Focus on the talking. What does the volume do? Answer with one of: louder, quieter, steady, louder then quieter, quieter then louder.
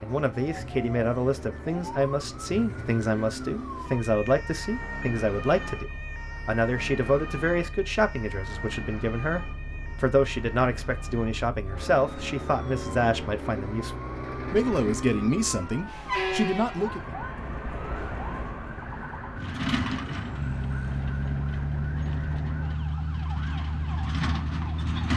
steady.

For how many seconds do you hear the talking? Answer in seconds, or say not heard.
17 s.